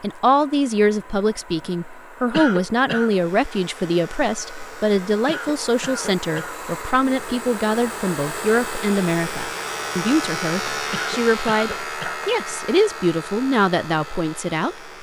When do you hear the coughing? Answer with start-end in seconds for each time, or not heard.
2.3-3.1, 5.2-6.6, 10.9-12.2.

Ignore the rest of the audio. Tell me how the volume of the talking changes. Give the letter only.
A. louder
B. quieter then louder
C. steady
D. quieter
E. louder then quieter
C.